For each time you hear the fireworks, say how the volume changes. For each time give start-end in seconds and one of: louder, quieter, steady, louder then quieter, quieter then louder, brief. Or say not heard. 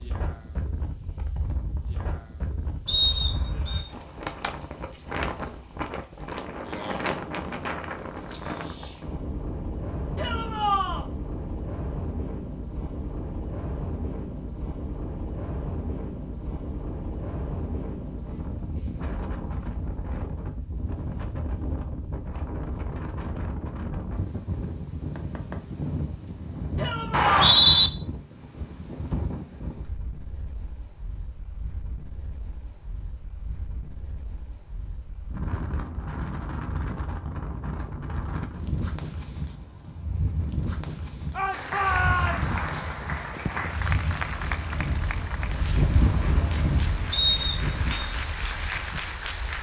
not heard.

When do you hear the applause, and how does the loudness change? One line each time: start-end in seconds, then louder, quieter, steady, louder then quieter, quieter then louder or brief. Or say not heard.
41.5-49.5 quieter then louder.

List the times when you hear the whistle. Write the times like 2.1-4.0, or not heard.
2.9-3.9, 27.1-27.9, 47.1-48.0.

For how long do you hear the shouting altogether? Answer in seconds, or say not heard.
3 s.